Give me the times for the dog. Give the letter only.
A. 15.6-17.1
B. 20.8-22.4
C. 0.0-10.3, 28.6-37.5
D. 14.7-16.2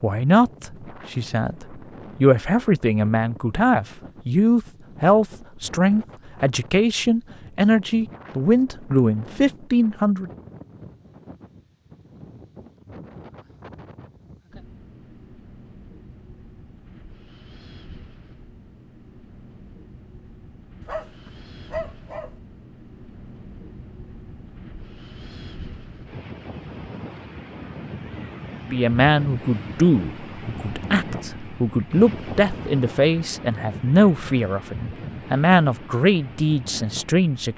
B.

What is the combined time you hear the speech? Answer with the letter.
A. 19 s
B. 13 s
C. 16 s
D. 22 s
A.